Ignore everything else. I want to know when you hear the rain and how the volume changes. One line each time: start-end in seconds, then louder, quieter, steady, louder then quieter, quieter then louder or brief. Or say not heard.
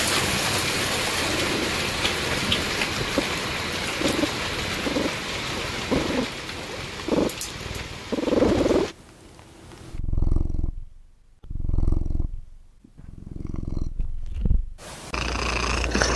0.0-8.9 quieter.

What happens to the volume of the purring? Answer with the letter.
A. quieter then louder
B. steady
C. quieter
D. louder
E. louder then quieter
E.